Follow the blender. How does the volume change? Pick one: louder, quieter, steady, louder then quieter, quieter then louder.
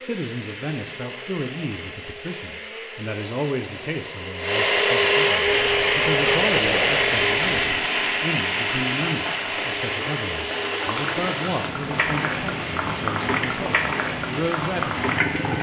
louder then quieter.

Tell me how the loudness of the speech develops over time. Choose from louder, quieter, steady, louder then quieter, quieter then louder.
steady.